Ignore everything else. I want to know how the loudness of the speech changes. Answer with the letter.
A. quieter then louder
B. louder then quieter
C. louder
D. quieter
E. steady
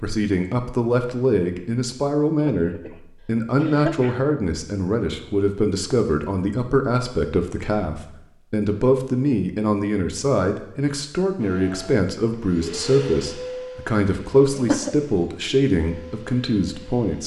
E.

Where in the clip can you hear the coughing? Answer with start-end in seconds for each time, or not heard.
2.4-3.0, 3.5-4.2, 14.2-14.9.